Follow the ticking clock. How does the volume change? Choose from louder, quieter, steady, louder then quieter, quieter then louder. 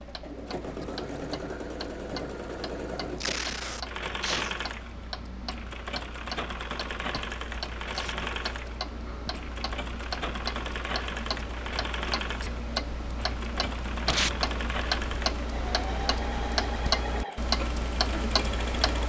louder.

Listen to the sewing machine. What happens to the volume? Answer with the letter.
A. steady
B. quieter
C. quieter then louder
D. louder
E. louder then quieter
A.